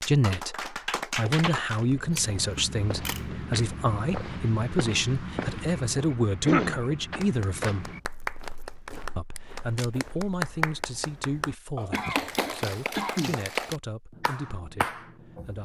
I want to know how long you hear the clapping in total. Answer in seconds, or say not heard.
10 s.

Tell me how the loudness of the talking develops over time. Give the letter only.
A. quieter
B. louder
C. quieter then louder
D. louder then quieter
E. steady
A.